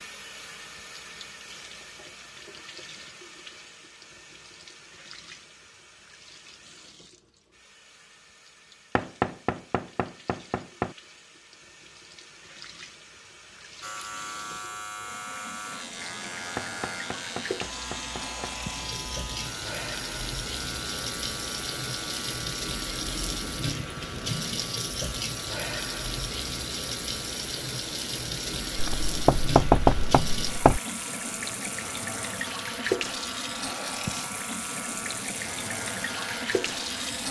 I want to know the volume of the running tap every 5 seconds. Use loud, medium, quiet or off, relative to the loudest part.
quiet, quiet, quiet, medium, loud, loud, loud, loud.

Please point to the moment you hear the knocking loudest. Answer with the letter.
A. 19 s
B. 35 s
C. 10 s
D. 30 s
D.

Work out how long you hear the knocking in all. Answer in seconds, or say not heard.
6 s.